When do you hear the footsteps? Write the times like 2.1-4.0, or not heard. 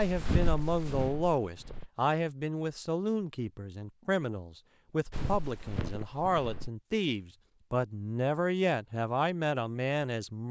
0.0-1.9, 5.1-6.7.